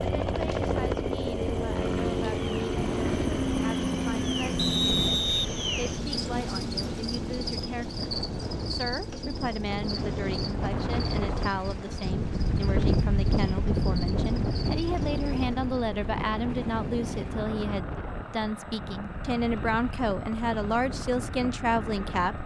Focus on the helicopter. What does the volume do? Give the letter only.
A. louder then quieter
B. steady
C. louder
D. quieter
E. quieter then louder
D.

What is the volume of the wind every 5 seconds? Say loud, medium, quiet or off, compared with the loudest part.
medium, medium, loud, medium, medium.